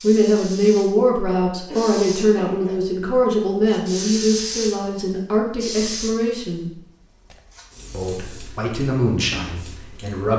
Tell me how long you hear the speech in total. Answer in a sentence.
The speech can be heard for 9 seconds in total.